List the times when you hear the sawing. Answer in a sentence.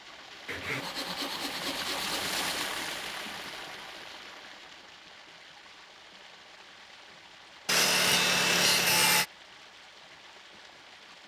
The sawing can be heard from 0.5 to 2.7 s and from 7.7 to 9.2 s.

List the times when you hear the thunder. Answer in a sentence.
You can't hear the thunder here.